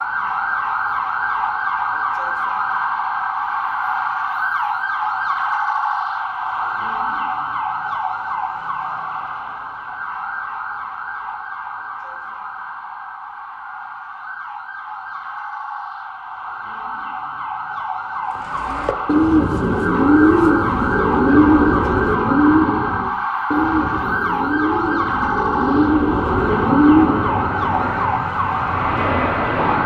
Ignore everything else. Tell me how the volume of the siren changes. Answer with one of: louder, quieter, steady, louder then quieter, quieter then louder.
quieter then louder.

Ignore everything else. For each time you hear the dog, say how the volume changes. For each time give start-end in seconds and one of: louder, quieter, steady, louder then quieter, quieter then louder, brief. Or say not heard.
not heard.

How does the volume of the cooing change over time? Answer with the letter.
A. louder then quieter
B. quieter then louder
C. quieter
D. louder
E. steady
B.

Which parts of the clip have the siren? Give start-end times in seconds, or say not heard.
0.0-29.8.